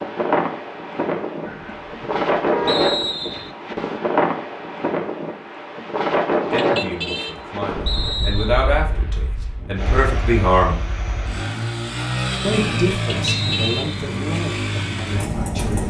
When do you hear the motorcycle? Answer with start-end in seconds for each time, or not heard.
9.8-15.8.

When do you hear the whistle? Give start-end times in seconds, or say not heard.
2.6-3.5, 7.8-8.7, 13.2-14.1.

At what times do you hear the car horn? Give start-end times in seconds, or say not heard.
1.4-2.9, 6.5-7.3, 13.1-13.9.